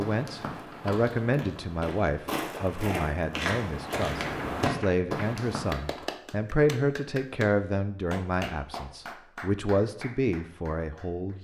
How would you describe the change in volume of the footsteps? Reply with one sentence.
The loudness of the footsteps goes up.